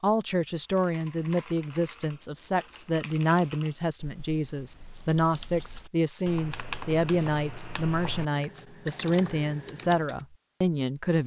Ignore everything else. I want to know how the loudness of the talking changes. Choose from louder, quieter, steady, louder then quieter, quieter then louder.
steady.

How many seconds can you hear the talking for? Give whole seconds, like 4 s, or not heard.
11 s.